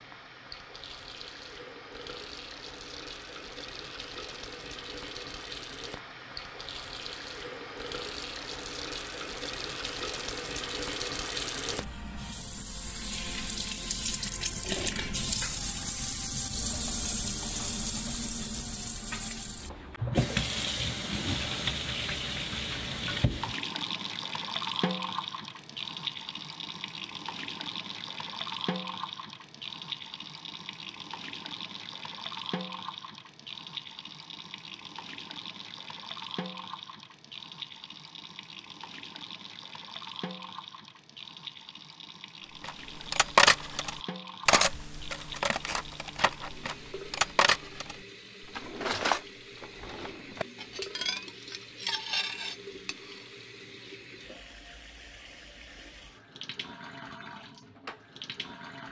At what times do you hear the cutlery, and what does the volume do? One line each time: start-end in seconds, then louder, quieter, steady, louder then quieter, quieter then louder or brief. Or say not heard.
42.6-48.0 quieter then louder
48.5-53.2 quieter then louder.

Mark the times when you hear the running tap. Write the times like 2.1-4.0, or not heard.
0.0-58.8.